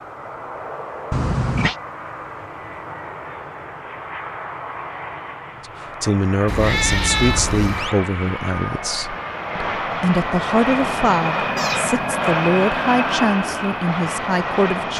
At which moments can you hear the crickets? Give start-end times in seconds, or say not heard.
not heard.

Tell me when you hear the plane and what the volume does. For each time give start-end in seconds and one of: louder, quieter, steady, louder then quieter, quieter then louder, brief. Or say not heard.
0.0-14.9 louder.